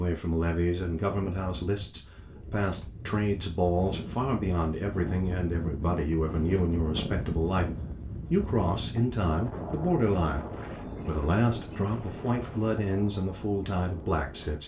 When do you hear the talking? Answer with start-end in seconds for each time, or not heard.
0.0-7.7, 8.3-14.6.